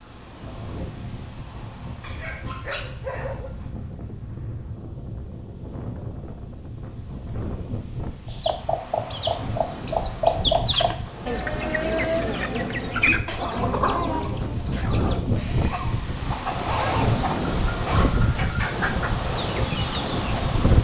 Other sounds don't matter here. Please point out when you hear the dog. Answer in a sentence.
You can hear the dog from 2.0 to 3.5 s and from 16.6 to 18.6 s.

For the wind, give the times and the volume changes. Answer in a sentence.
The wind can be heard from 0.0 to 20.7 s, getting louder.